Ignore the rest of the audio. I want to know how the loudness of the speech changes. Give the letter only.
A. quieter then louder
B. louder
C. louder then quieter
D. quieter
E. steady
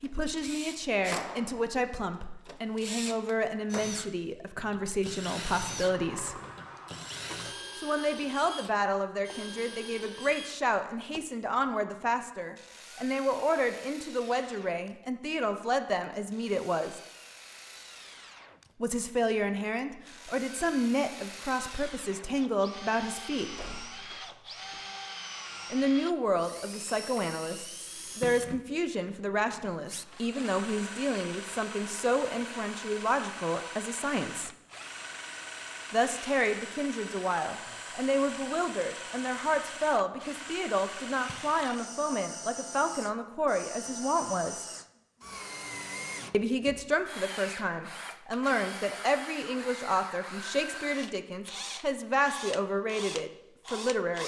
E.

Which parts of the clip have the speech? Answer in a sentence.
You can hear the speech from 0.0 to 6.4 s, from 7.8 to 17.0 s, from 18.8 to 23.6 s, from 25.7 to 34.5 s, from 35.9 to 44.6 s and from 46.3 to 54.2 s.